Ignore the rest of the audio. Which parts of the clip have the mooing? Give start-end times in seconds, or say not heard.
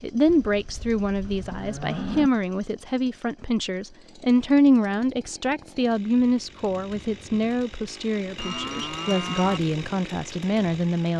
0.2-2.3, 8.3-9.6.